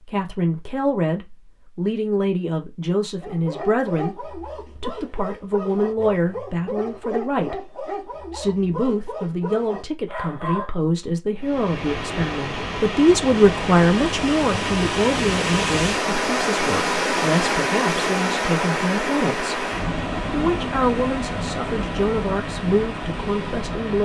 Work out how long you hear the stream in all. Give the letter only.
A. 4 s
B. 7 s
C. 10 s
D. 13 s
D.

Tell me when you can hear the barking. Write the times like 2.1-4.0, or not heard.
3.2-10.7.